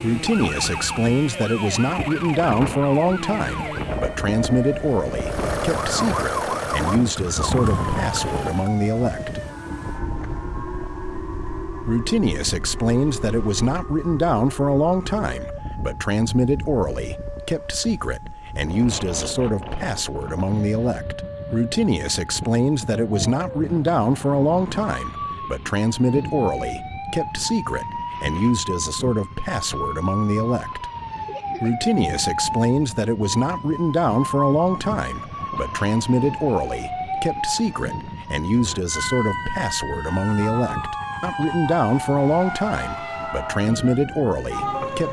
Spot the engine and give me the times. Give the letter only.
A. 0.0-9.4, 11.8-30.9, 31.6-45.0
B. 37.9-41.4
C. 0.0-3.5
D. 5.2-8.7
D.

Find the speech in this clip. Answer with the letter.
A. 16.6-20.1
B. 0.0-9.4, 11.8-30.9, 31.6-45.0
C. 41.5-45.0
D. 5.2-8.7
B.